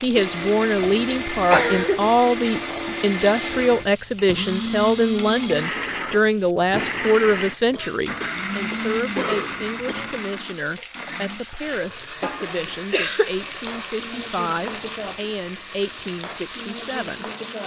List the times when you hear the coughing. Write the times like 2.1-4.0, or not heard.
0.8-2.1, 7.7-10.2, 12.9-13.3.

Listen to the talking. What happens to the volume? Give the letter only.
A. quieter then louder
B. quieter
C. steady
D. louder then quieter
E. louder
B.